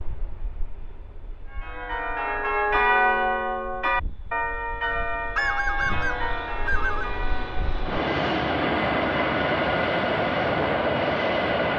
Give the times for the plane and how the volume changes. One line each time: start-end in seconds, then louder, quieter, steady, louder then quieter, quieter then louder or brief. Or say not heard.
0.0-11.7 louder.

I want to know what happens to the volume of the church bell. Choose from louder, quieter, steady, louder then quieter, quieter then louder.
quieter.